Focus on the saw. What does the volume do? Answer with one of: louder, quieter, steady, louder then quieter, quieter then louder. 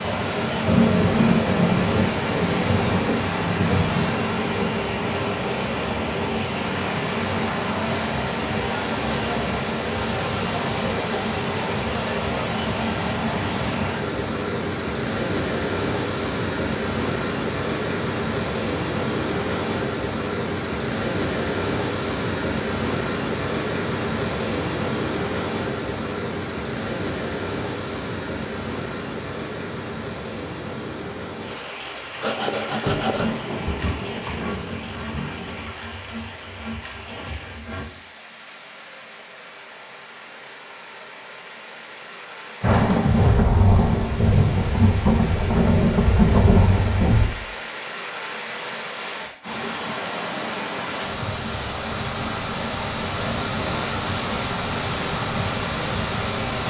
quieter.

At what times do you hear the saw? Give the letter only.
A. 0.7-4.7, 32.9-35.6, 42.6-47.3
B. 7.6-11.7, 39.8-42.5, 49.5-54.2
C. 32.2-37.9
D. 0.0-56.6
C.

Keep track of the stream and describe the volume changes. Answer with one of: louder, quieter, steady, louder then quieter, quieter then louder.
quieter then louder.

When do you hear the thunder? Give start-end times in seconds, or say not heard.
0.7-4.7, 32.9-35.6, 42.6-47.3.